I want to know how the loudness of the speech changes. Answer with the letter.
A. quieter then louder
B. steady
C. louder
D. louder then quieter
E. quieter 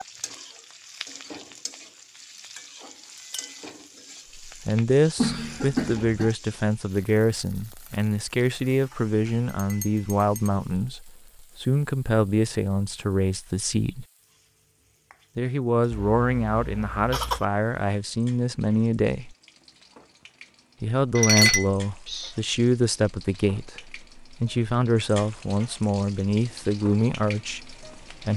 B.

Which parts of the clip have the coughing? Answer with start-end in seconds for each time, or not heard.
5.2-6.3, 15.9-17.4.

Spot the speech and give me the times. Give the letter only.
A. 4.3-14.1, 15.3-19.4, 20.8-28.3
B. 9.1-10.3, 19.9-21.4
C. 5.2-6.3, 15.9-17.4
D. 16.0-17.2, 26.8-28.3
A.